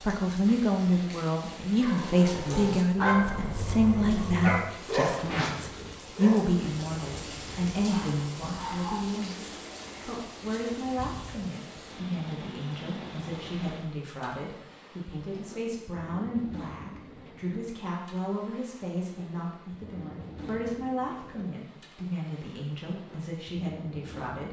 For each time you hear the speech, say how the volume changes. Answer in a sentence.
The speech can be heard from 0.0 to 24.4 s, getting quieter.